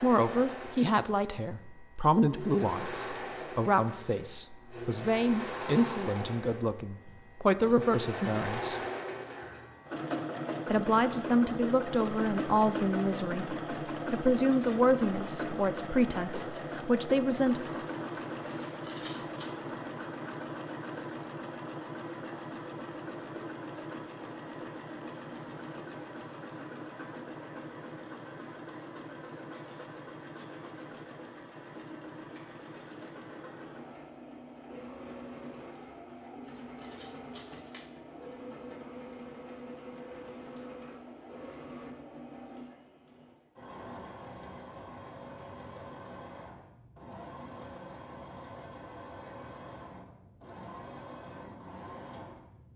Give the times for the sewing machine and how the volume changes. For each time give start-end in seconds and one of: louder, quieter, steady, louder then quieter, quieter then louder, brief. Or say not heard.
0.0-52.7 quieter.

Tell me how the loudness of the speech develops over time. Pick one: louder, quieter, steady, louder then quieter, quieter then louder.
steady.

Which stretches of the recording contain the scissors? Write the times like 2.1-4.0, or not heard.
18.4-19.5, 36.5-37.9.